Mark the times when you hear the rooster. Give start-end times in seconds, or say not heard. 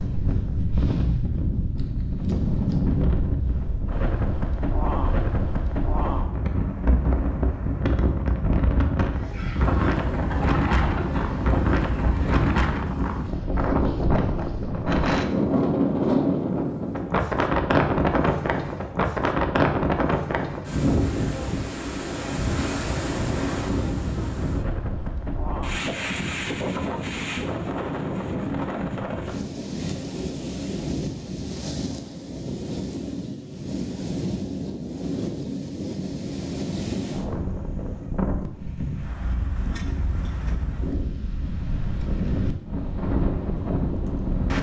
9.1-12.4.